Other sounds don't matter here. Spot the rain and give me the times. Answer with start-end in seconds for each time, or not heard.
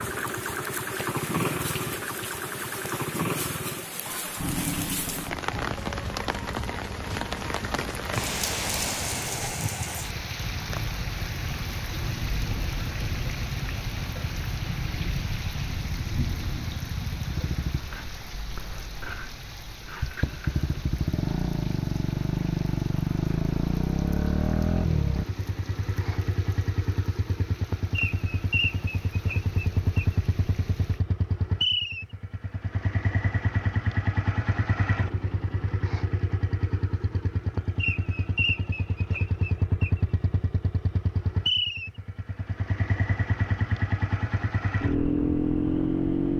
0.0-31.1.